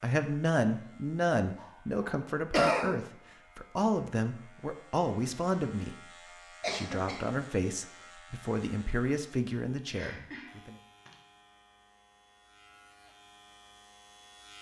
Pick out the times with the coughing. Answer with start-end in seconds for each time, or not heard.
1.6-2.9, 6.6-7.3, 9.9-11.2.